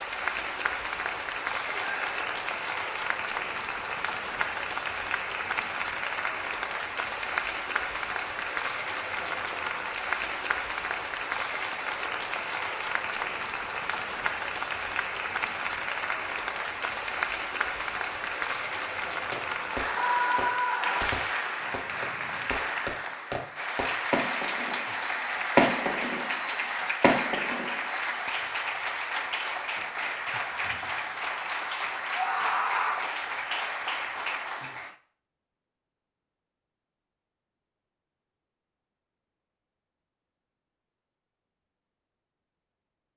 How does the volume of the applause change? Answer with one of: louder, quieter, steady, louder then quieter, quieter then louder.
steady.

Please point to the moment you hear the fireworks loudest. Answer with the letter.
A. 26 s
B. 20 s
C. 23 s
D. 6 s
A.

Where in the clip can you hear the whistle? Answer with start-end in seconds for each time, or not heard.
not heard.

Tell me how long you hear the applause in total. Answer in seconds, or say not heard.
35 s.